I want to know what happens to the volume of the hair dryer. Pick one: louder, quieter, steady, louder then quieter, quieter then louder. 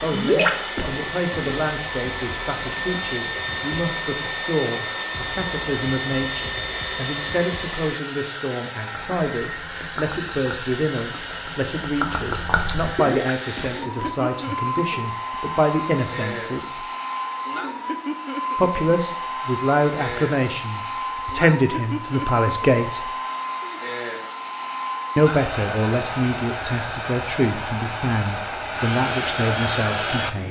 steady.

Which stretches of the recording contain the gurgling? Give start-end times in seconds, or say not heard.
0.1-1.6, 8.9-14.2.